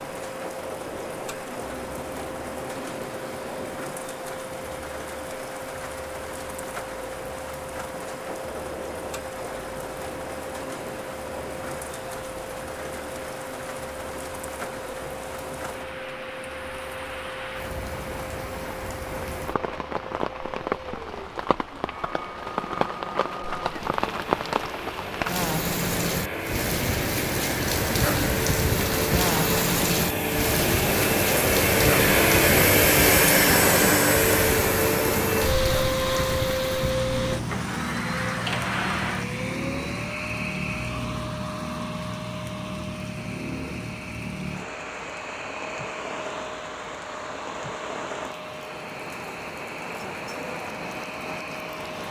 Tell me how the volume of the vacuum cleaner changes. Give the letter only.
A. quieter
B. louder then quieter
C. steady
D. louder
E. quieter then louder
B.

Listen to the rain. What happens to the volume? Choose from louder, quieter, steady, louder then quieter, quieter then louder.
louder then quieter.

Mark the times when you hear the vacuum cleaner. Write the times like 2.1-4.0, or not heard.
0.0-52.0.